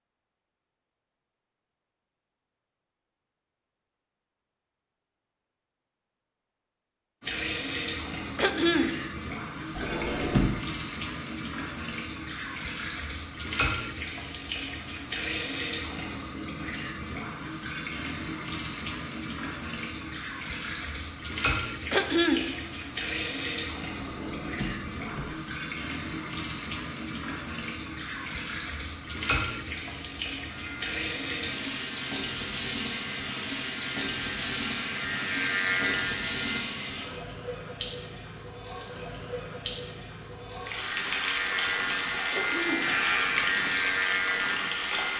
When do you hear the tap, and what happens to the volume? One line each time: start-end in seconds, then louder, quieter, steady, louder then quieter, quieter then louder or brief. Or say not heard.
7.2-45.1 steady.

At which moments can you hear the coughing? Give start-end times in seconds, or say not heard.
8.3-8.9, 21.9-22.4, 42.3-42.9.